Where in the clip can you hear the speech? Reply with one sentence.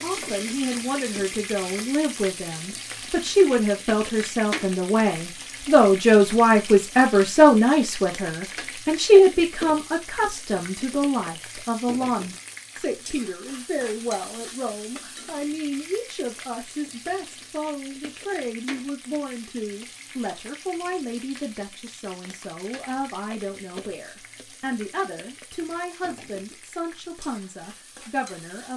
You can hear the speech from 0.0 to 28.7 s.